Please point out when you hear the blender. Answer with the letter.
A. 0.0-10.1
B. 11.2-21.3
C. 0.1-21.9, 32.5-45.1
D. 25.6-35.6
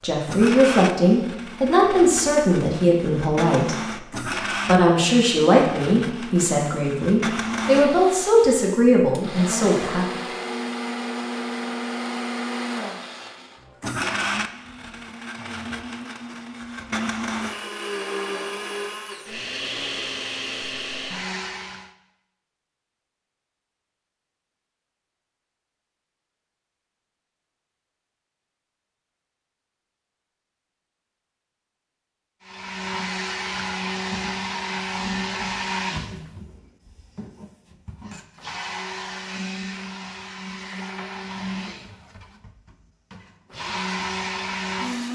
C.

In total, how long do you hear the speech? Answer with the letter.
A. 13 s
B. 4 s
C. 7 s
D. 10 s
D.